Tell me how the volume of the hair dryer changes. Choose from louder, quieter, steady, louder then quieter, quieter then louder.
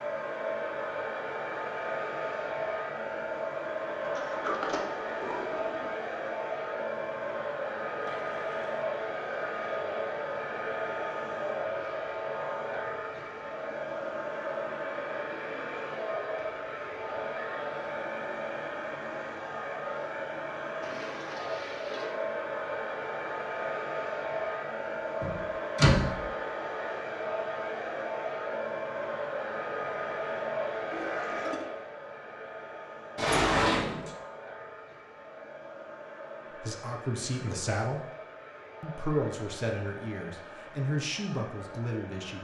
quieter.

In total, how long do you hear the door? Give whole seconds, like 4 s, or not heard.
4 s.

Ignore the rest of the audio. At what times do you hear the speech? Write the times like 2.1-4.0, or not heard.
36.5-38.0, 38.8-42.3.